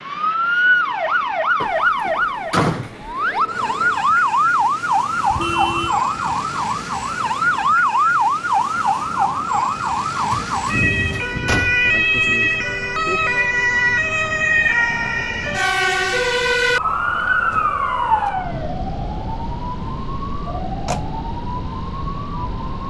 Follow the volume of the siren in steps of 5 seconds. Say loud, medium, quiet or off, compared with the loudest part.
loud, loud, loud, loud, quiet.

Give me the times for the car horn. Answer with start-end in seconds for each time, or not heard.
5.3-6.0.